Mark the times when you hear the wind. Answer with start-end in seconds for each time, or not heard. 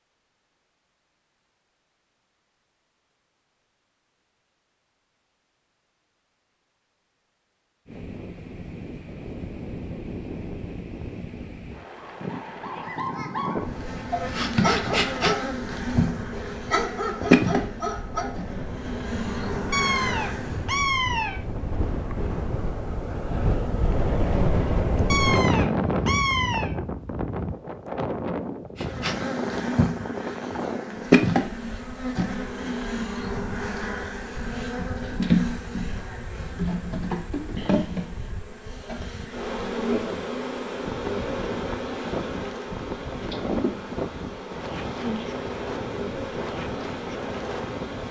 7.8-48.0.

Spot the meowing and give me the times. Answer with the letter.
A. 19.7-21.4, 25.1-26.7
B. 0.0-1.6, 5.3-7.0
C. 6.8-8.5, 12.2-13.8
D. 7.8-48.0
A.